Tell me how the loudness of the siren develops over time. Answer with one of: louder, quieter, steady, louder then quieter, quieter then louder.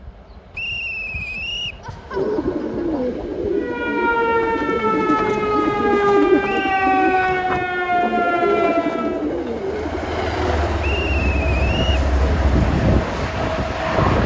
steady.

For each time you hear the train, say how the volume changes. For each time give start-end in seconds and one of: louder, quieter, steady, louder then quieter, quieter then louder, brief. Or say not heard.
0.0-14.2 louder.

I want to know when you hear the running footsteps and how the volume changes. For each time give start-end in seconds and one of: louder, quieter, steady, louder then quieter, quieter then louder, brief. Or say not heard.
not heard.